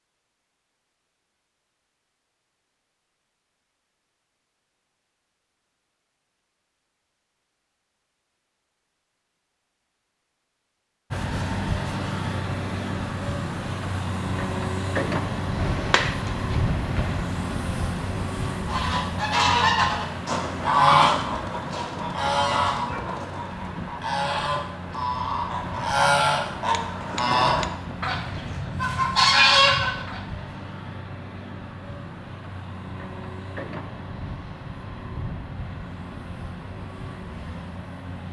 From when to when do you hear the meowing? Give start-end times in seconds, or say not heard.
not heard.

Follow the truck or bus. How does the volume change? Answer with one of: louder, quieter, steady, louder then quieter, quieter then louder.
quieter.